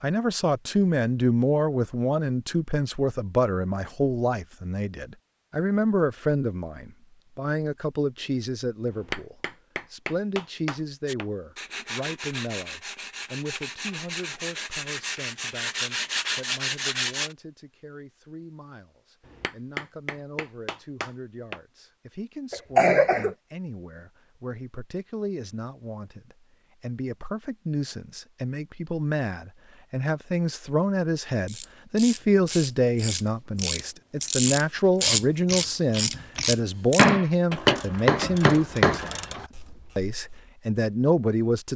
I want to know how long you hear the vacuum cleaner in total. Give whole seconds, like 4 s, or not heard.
not heard.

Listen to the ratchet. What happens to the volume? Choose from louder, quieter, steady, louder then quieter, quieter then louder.
louder then quieter.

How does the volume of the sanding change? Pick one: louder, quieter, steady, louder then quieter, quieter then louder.
louder.